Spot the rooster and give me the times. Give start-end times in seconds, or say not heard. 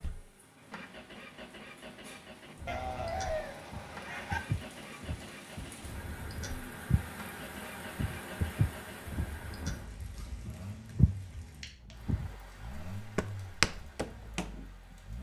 2.6-4.4.